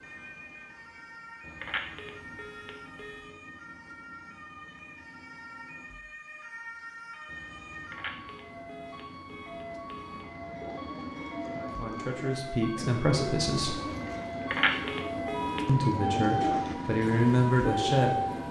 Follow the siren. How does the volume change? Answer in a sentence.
The volume of the siren goes up.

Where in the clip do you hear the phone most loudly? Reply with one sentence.
The loudest moment of the phone is at 15 seconds.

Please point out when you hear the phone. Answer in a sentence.
The phone can be heard from 1.6 to 3.3 s, from 7.9 to 10.2 s and from 14.5 to 15.6 s.